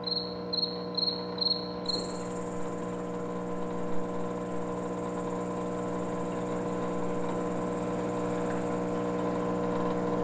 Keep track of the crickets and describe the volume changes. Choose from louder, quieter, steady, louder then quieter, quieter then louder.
quieter.